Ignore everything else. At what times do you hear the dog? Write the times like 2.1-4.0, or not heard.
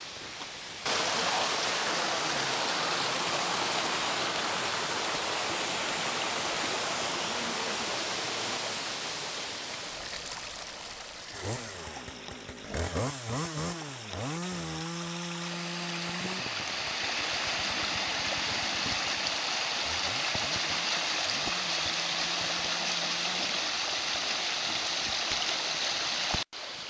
not heard.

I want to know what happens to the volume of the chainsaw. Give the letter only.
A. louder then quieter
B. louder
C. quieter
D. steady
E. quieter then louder
C.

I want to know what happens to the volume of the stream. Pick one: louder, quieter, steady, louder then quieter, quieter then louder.
quieter then louder.